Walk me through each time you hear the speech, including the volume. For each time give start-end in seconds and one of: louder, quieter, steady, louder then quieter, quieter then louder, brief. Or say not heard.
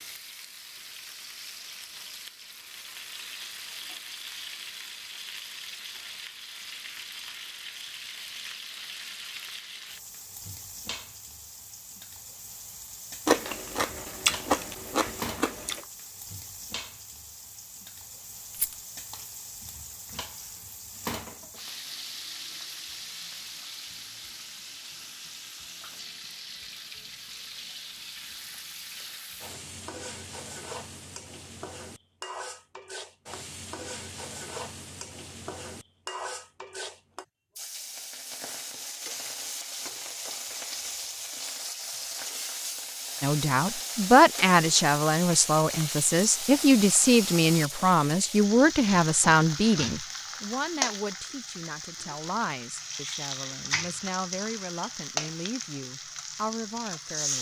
43.2-57.3 quieter.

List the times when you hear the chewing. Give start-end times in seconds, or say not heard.
13.2-15.8.